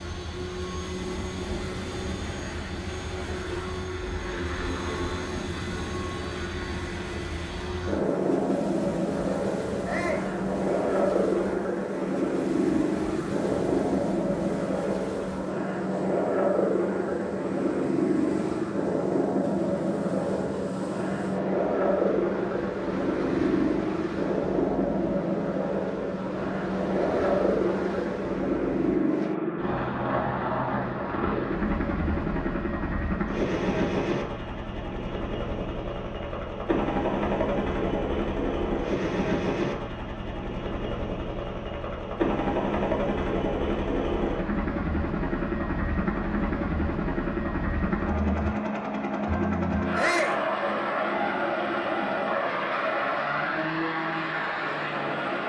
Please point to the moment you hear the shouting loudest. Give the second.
50 s.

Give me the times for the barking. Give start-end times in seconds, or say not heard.
not heard.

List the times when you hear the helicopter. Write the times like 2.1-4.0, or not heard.
0.0-55.4.